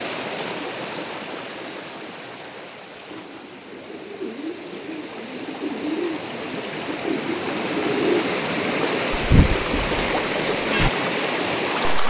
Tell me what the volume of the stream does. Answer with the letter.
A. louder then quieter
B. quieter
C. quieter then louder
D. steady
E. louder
C.